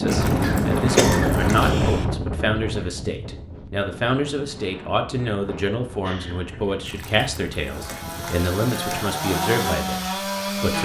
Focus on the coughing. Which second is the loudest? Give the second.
1 s.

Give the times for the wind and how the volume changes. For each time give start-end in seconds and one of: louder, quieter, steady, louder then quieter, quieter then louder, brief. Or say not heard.
0.0-8.4 quieter.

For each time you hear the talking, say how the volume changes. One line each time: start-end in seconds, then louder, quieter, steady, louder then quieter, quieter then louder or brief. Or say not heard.
0.0-10.7 steady.